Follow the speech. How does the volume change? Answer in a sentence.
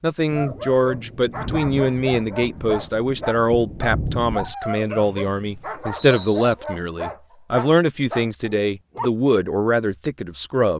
The volume of the speech stays about the same.